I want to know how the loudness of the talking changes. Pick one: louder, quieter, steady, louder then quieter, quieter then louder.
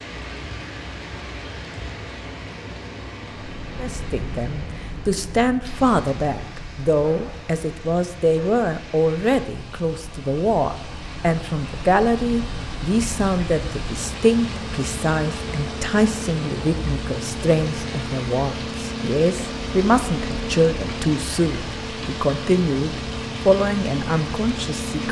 steady.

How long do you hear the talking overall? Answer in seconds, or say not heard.
21 s.